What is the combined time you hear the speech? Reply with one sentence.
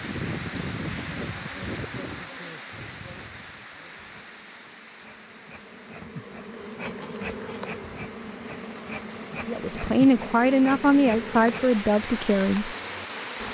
You can hear the speech for 3 seconds altogether.